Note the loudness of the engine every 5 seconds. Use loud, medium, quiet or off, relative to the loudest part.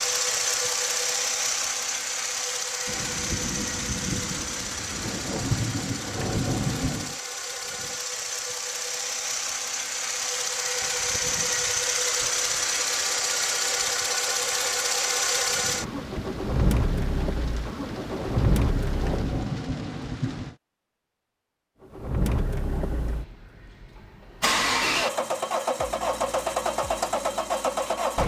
loud, medium, loud, loud, loud, loud.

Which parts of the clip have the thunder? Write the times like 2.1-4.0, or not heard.
2.9-7.2, 15.7-20.6.